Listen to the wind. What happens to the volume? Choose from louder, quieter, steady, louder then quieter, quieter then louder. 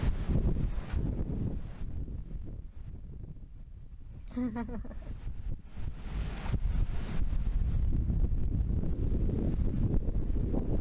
quieter then louder.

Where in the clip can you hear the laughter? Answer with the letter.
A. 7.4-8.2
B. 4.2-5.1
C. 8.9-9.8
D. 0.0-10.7
B.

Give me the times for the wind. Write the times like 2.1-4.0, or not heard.
0.0-10.7.